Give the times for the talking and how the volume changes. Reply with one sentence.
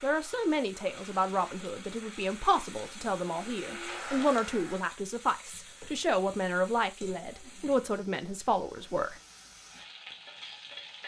The talking can be heard from 0.0 to 9.2 s, at a steady volume.